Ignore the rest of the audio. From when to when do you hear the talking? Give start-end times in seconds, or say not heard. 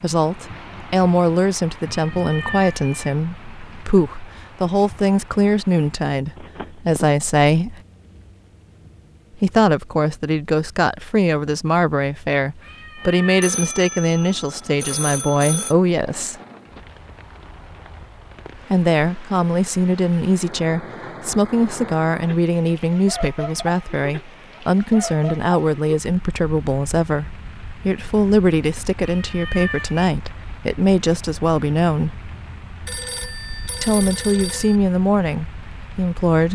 0.0-7.8, 9.3-16.4, 18.6-32.1, 33.8-36.4.